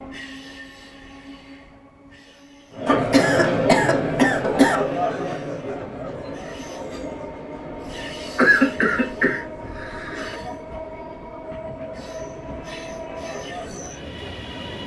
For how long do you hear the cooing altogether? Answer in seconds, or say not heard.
not heard.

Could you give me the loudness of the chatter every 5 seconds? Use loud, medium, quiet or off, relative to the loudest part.
loud, medium, quiet.